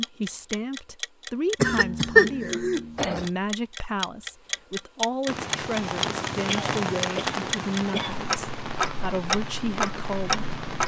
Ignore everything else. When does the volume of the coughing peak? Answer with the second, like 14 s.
2 s.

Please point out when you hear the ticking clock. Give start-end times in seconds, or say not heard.
0.0-10.8.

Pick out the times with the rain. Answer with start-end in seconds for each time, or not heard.
5.2-10.8.